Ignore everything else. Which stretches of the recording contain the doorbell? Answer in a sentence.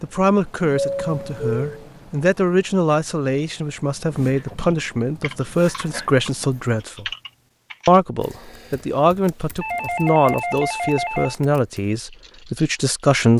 The doorbell can be heard from 0.7 to 1.9 s and from 9.6 to 11.3 s.